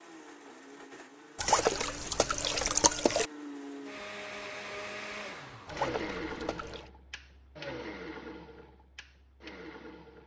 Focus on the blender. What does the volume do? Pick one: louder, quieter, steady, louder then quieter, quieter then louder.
louder then quieter.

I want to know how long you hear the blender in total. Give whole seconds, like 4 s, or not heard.
10 s.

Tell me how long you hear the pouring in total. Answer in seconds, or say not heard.
3 s.